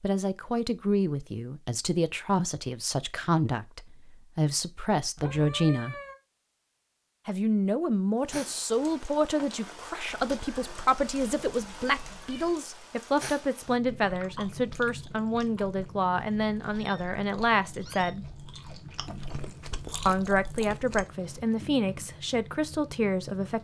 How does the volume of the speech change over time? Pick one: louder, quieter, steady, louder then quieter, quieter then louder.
steady.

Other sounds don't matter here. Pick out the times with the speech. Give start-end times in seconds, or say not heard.
0.0-6.0, 7.2-18.2, 20.1-23.5.